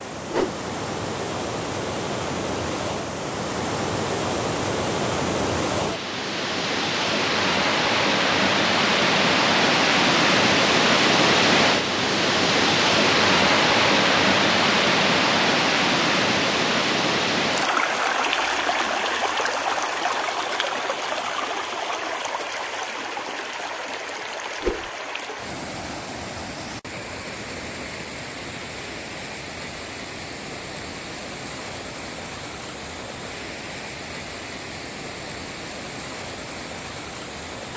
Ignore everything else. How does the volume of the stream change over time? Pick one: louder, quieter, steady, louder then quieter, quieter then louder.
louder then quieter.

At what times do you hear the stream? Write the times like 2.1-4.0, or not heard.
0.0-37.7.